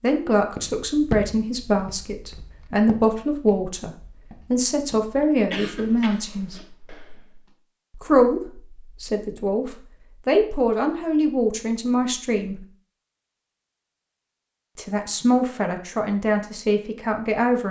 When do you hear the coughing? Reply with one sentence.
You can hear the coughing from 5.5 to 6.7 s.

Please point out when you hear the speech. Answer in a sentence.
The speech can be heard from 0.0 to 3.9 s, from 4.5 to 6.5 s, from 8.0 to 12.7 s and from 14.8 to 17.6 s.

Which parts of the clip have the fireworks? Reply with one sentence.
The fireworks can't be heard in this clip.